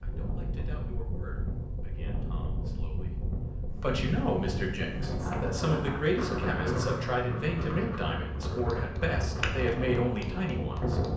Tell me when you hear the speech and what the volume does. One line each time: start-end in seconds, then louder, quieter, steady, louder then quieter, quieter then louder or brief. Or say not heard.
0.0-11.0 louder.